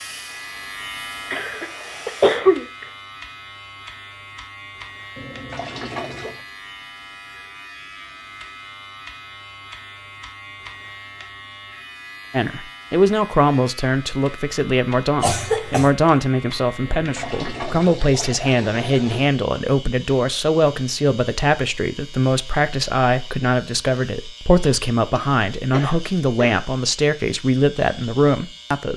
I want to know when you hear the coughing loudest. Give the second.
2 s.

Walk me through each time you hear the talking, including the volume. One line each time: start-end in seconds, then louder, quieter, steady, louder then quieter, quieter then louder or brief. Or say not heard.
12.3-28.9 steady.